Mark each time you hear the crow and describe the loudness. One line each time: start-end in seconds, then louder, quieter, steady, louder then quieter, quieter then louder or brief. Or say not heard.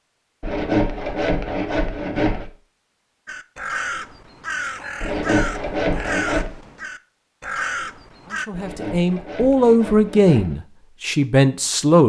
3.2-8.5 quieter then louder.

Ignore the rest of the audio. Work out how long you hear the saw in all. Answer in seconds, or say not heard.
6 s.